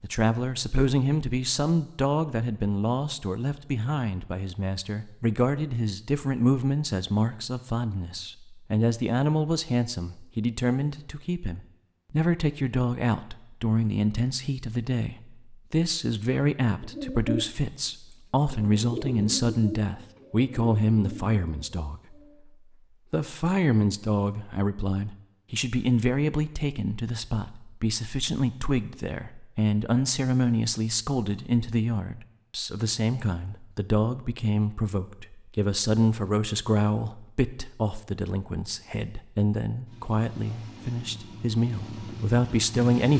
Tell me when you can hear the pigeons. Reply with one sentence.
The pigeons can be heard from 16.8 to 22.4 s.